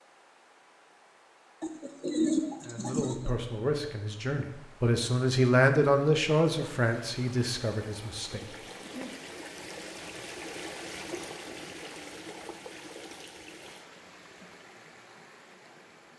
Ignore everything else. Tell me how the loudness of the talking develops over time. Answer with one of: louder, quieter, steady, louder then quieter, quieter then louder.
louder then quieter.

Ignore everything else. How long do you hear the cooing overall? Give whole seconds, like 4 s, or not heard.
2 s.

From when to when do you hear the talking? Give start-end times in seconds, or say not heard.
2.6-9.1.